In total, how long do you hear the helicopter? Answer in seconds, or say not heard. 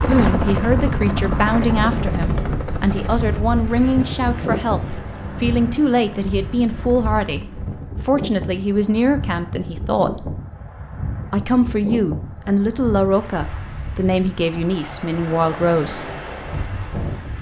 8 s.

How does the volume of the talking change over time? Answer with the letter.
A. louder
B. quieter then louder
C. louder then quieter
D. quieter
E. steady
E.